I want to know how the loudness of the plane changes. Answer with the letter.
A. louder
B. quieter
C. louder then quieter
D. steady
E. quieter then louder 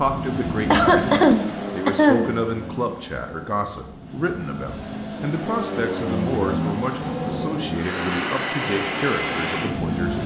E.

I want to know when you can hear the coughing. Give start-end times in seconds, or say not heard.
0.7-2.2.